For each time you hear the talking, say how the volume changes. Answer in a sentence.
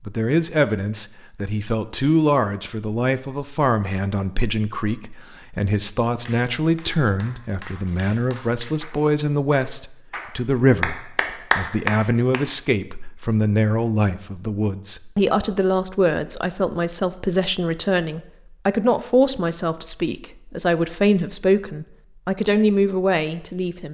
You can hear the talking from 0.0 to 23.8 s, at a steady volume.